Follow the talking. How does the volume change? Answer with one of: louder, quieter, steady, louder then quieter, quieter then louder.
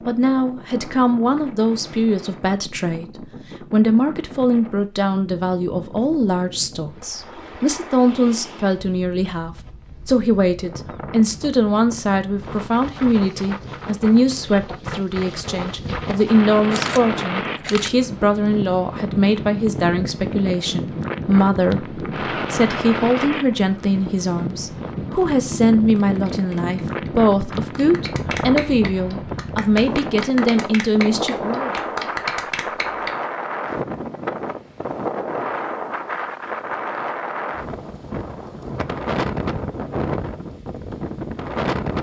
steady.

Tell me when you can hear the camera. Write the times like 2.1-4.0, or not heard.
16.7-17.9.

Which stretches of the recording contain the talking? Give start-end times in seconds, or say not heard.
0.1-31.7.